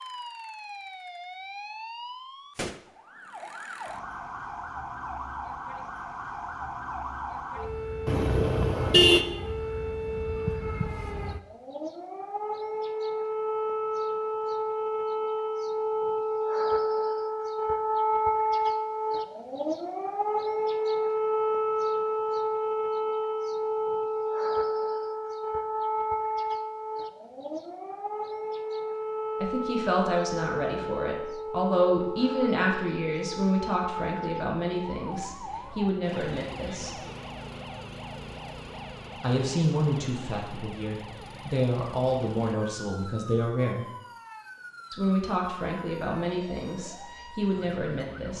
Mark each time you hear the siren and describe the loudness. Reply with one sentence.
The siren can be heard from 0.0 to 48.3 s, getting louder then quieter.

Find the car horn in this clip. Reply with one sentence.
You can hear the car horn from 8.1 to 9.2 s.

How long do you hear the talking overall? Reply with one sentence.
You can hear the talking for 16 seconds altogether.